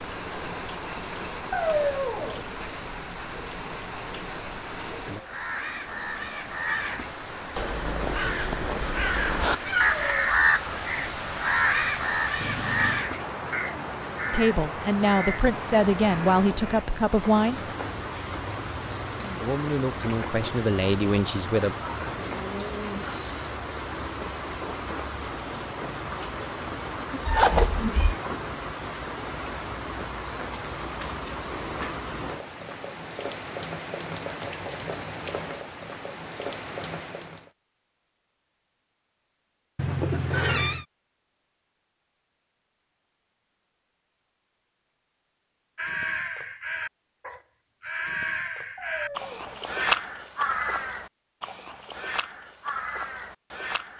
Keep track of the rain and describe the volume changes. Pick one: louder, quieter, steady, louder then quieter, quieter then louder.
steady.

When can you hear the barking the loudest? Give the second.
2 s.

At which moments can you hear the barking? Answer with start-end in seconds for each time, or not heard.
1.5-2.5, 48.8-49.7.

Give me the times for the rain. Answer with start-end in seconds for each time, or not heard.
0.0-37.5.